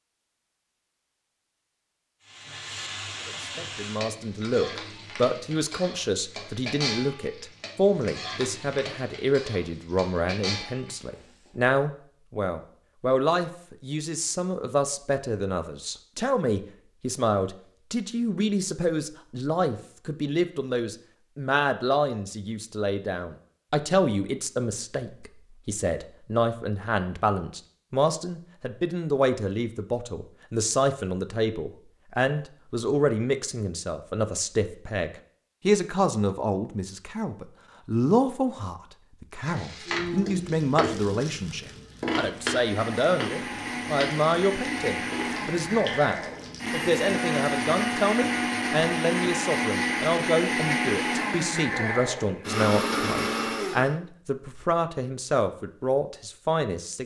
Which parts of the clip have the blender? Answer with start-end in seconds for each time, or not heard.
42.3-54.0.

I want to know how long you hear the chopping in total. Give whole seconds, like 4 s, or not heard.
not heard.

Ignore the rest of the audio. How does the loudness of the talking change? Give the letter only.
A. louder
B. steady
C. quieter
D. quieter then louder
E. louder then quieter
B.